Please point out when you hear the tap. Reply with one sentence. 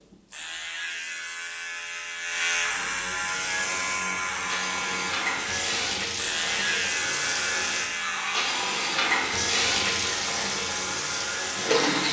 You can hear the tap from 3.3 to 12.0 s.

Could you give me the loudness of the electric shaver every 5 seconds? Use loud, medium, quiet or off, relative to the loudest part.
loud, loud, medium.